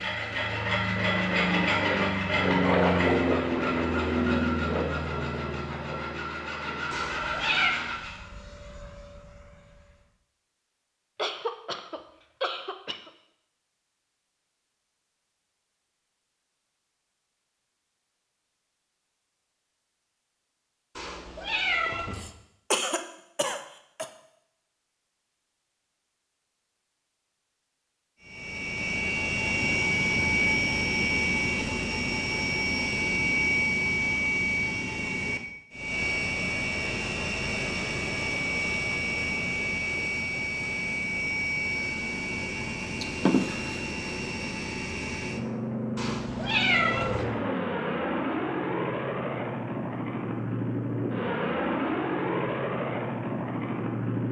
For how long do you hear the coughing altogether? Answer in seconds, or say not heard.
5 s.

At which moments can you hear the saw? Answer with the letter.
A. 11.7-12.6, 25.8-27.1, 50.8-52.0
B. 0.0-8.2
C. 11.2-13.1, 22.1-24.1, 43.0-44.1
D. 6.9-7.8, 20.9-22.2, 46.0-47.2
B.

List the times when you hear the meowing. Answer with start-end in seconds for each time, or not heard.
6.9-7.8, 20.9-22.2, 46.0-47.2.